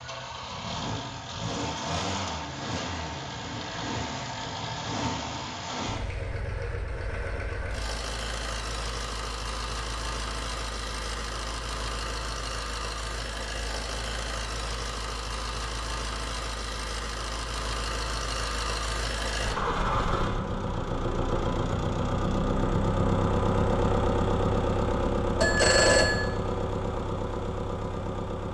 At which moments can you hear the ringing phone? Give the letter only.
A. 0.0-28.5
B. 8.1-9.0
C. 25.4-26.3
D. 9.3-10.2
C.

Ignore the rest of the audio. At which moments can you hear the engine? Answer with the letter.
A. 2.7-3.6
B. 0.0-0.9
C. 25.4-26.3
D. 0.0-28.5
D.